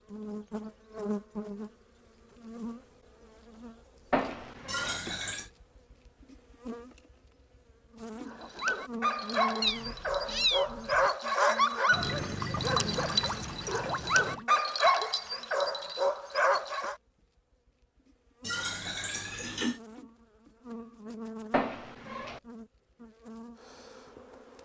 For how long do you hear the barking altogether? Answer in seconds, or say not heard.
9 s.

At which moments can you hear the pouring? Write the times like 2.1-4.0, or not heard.
4.7-5.5, 11.9-14.4, 18.4-19.8.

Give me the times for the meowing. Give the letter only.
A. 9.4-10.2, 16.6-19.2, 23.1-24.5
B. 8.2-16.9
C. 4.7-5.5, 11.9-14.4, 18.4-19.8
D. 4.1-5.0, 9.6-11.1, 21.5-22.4
D.